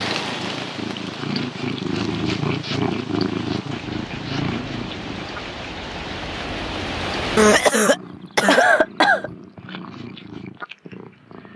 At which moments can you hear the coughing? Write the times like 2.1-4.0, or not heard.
7.3-9.3.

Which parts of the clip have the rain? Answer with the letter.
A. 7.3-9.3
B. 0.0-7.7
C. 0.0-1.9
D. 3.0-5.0
B.